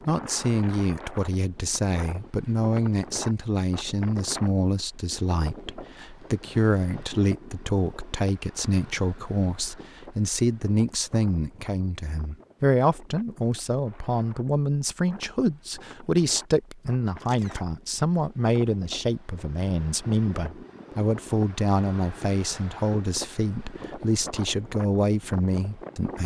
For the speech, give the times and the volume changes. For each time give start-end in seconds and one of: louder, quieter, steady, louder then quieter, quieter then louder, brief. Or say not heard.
0.1-26.2 steady.